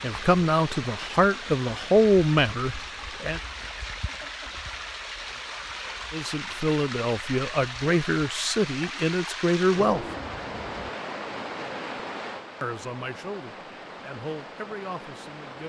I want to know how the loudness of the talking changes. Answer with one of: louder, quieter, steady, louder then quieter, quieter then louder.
quieter.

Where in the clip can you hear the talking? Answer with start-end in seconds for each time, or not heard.
0.0-3.4, 6.1-10.1, 12.6-15.6.